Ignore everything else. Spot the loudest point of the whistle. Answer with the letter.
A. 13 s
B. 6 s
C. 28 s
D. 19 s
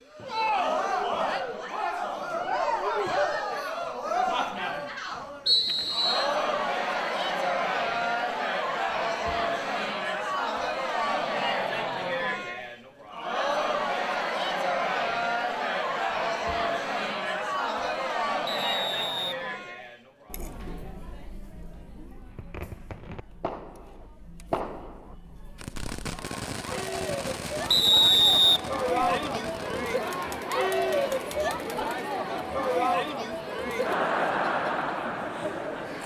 C.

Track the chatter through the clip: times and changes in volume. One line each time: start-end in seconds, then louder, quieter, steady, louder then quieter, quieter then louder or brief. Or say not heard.
0.1-36.0 quieter then louder.